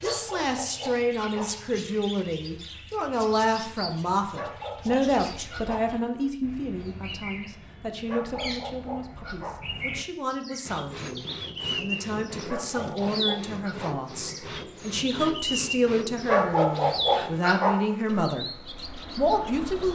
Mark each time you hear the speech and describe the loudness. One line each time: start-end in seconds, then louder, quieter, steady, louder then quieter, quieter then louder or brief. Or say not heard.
0.0-18.4 quieter then louder
19.1-19.9 brief.